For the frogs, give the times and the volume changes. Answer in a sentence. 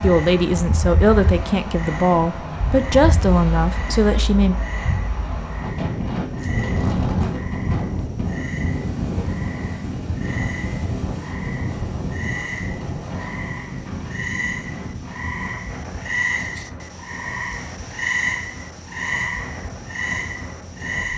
You can hear the frogs from 0.0 to 21.1 s, getting louder.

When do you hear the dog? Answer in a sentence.
The dog can't be heard in this clip.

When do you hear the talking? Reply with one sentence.
The talking can be heard from 0.0 to 4.5 s.